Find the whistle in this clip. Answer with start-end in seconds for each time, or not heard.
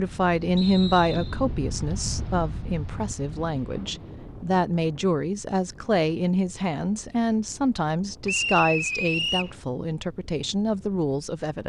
0.6-1.4, 8.2-9.6.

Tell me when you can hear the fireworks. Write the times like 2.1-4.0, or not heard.
not heard.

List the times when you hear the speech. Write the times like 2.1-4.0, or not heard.
0.0-11.6.